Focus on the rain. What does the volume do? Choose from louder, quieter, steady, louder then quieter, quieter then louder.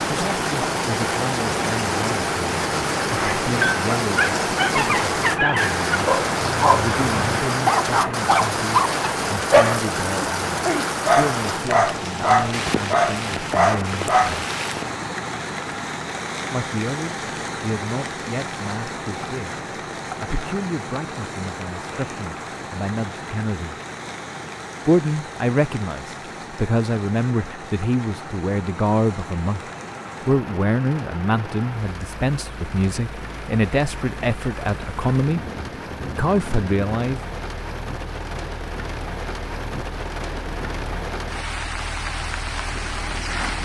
quieter then louder.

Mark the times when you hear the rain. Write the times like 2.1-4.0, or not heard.
0.0-43.6.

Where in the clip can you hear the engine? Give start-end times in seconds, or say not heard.
0.0-43.6.